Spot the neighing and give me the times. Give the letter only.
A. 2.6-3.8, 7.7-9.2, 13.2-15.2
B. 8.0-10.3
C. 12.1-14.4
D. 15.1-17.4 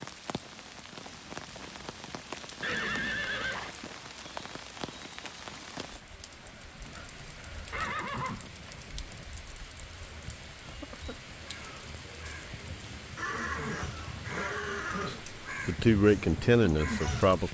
A.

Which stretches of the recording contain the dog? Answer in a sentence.
You can't hear the dog here.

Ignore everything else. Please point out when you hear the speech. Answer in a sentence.
You can hear the speech from 15.1 to 17.4 s.